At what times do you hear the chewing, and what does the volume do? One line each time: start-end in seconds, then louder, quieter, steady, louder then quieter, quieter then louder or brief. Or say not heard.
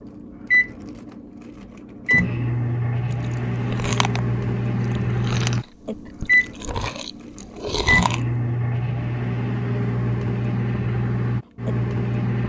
3.2-8.2 quieter then louder.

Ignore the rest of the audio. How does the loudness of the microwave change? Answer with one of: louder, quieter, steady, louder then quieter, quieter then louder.
steady.